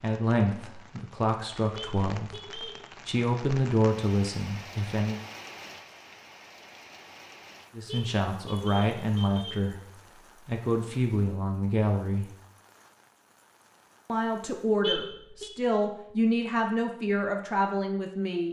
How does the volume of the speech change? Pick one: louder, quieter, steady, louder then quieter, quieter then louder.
steady.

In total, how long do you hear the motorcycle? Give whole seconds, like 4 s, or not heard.
not heard.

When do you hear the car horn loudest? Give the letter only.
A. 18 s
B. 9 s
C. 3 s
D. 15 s
D.